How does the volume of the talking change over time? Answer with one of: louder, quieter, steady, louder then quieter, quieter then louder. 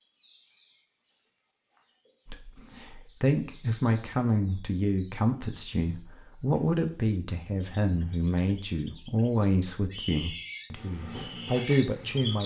steady.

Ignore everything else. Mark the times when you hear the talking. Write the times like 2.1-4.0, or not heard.
2.2-12.4.